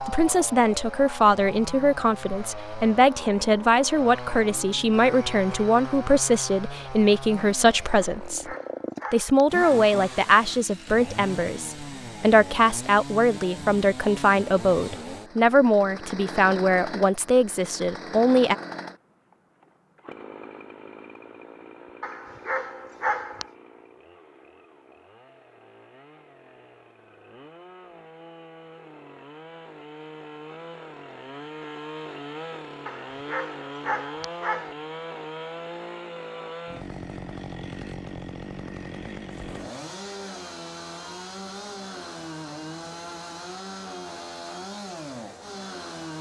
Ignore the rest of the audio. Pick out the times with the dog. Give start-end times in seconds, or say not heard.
8.0-9.8, 22.0-23.5, 32.9-34.8.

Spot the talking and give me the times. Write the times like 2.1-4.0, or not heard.
0.0-18.6.